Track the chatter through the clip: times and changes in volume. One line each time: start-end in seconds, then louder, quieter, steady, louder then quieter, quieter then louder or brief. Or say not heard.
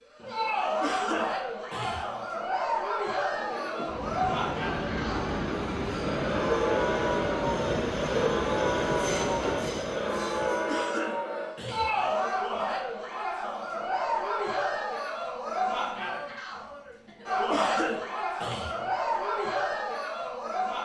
0.1-20.8 steady.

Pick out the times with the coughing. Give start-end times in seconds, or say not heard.
0.8-2.1, 10.7-12.1, 17.4-18.9.